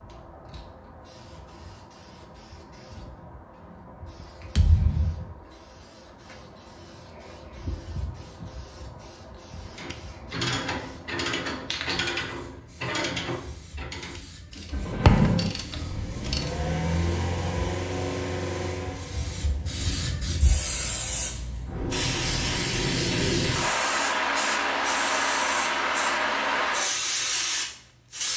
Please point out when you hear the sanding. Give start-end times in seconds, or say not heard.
not heard.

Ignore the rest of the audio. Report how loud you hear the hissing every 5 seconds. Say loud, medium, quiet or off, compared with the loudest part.
quiet, quiet, quiet, quiet, loud, loud.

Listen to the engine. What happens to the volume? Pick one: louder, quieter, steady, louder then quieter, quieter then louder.
quieter.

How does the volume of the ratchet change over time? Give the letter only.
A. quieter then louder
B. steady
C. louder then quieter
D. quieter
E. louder
D.